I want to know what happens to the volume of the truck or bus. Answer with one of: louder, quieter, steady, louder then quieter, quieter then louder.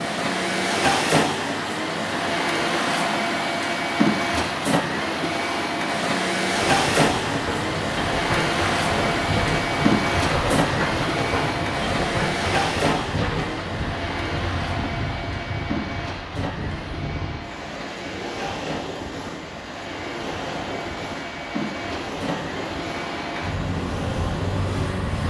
quieter.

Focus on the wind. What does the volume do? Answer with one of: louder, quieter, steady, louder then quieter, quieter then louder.
quieter.